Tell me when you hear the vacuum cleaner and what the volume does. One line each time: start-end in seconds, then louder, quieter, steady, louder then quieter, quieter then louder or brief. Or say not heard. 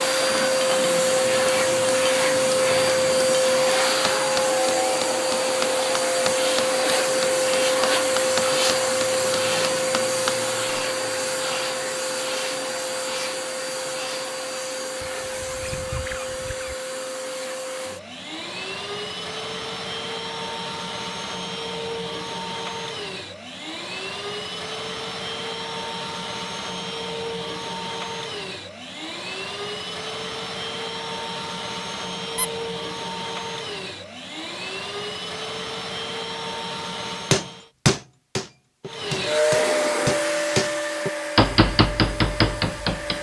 0.0-37.7 quieter
38.9-43.1 quieter.